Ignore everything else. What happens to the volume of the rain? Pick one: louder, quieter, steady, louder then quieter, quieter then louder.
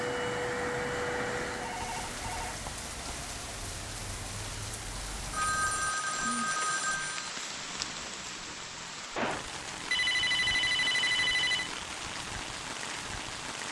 steady.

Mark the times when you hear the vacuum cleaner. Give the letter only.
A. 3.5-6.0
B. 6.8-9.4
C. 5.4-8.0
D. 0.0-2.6
D.